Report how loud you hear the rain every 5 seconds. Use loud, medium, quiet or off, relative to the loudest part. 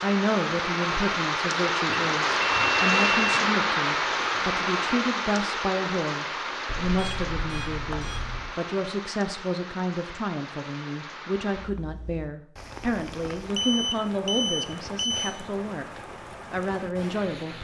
loud, medium, quiet, quiet.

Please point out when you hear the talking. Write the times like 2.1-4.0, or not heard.
0.0-17.5.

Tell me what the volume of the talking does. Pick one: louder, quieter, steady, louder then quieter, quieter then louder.
steady.